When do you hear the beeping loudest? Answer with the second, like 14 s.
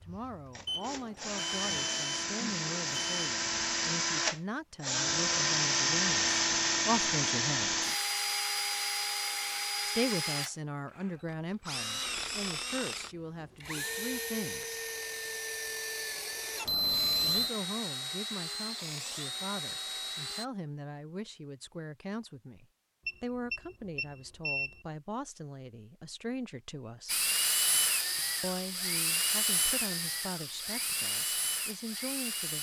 17 s.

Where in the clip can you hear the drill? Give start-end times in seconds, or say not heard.
0.0-20.4, 27.1-32.5.